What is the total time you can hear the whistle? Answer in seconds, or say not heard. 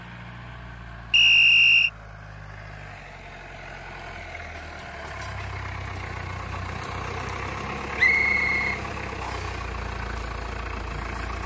2 s.